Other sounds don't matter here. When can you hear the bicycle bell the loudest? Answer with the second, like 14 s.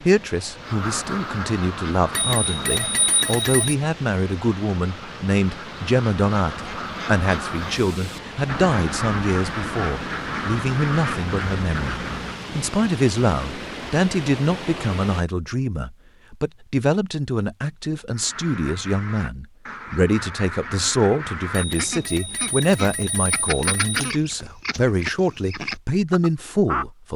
3 s.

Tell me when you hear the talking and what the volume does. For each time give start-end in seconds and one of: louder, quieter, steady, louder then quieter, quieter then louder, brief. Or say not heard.
0.0-27.1 steady.